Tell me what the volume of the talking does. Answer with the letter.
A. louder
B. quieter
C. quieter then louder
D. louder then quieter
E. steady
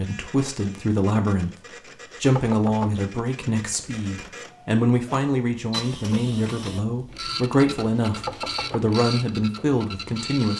E.